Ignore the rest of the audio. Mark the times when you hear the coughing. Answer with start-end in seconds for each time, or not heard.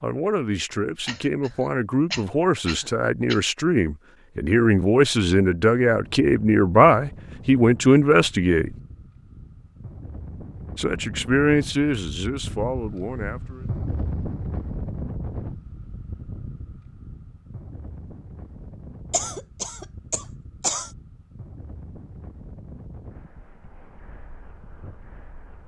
1.1-3.4, 19.1-20.9.